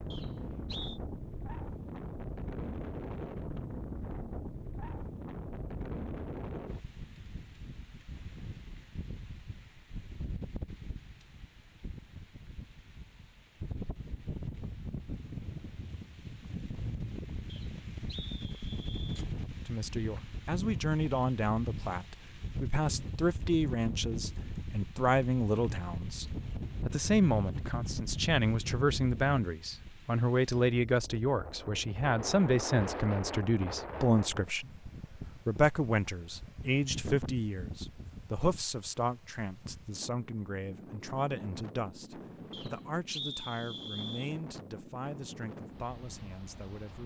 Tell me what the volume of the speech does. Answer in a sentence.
The loudness of the speech goes down.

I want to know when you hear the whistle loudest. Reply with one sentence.
The volume of the whistle peaks at 43 seconds.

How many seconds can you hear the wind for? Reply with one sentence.
You can hear the wind for 47 seconds altogether.